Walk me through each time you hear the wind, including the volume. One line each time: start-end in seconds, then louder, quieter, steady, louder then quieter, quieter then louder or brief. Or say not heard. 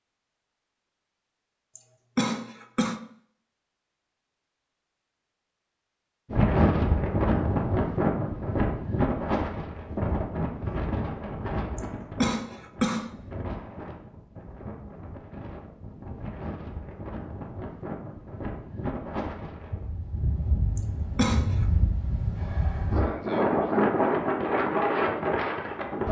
6.3-26.0 quieter then louder.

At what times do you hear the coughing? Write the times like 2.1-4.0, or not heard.
1.8-3.0, 11.8-13.1, 20.8-21.6.